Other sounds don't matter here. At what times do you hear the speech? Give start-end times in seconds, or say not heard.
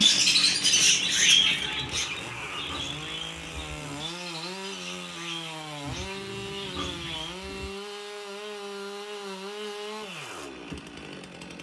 not heard.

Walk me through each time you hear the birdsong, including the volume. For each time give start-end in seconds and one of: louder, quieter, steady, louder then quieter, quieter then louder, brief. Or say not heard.
0.0-7.4 quieter.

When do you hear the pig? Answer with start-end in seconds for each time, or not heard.
1.8-4.0, 5.8-7.7.